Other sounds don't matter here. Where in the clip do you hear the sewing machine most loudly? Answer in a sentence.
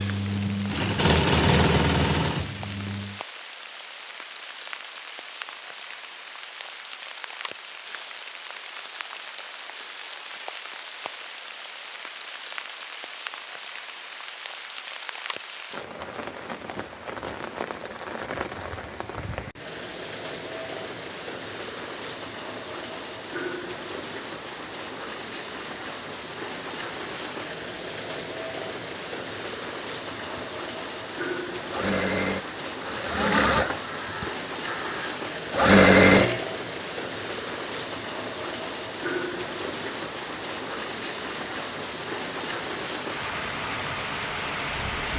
The volume of the sewing machine peaks at 36 seconds.